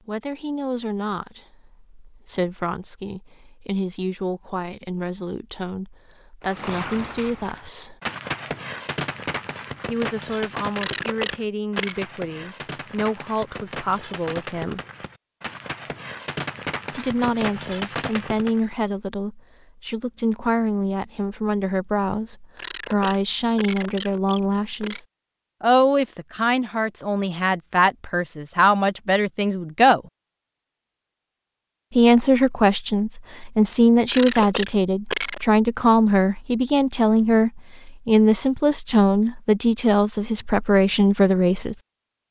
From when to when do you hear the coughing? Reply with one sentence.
The coughing can be heard from 10.8 to 12.0 s, from 22.6 to 25.0 s and from 34.0 to 35.5 s.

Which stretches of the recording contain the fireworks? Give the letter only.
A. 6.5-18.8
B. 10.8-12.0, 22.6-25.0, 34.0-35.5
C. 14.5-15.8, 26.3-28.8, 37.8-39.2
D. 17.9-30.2
A.